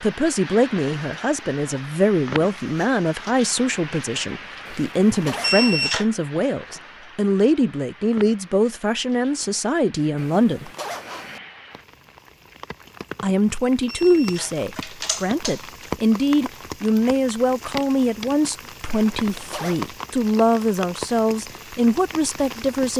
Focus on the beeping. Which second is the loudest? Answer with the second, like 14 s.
6 s.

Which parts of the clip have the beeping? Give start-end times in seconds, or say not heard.
5.4-6.0, 13.8-15.6.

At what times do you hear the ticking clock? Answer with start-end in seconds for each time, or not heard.
not heard.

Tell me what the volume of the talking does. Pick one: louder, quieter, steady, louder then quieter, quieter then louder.
steady.